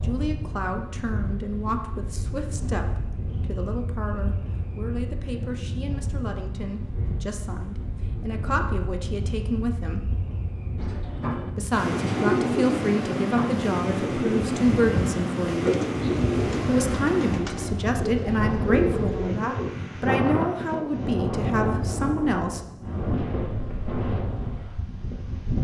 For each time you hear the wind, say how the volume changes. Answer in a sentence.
The wind can be heard from 0.0 to 25.5 s, getting louder.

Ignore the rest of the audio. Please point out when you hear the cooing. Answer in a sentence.
The cooing can be heard from 10.8 to 19.8 s.